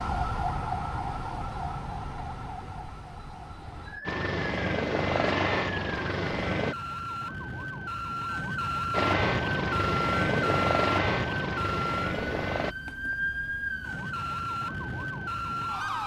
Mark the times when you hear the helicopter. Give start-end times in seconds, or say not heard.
4.0-6.8, 8.9-12.8.